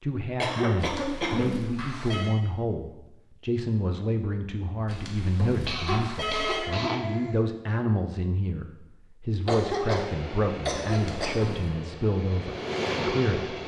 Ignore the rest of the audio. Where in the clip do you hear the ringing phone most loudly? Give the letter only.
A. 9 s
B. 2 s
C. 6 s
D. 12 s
C.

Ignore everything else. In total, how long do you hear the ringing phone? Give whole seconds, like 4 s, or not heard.
4 s.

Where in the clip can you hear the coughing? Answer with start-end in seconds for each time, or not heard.
0.4-2.0, 5.7-7.3, 9.4-11.3.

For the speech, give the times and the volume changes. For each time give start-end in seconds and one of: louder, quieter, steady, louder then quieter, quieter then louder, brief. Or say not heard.
0.0-13.6 steady.